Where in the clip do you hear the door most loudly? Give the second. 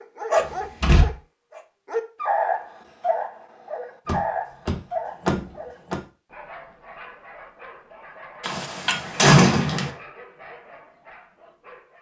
9 s.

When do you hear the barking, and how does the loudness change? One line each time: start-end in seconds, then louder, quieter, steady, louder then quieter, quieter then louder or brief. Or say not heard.
0.0-11.9 quieter.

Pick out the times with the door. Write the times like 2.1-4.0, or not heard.
0.3-1.1, 4.0-6.0, 8.4-9.9.